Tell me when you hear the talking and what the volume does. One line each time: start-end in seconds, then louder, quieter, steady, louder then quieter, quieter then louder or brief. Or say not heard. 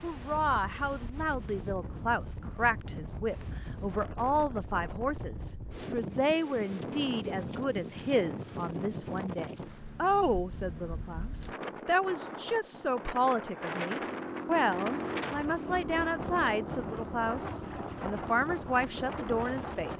0.0-19.9 steady.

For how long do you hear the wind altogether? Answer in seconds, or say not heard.
20 s.